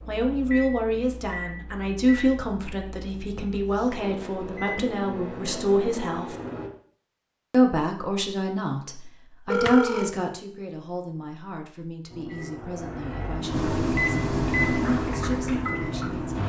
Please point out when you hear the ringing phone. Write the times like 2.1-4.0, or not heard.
9.5-10.1.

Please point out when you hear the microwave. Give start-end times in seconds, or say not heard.
0.0-6.7, 12.1-16.4.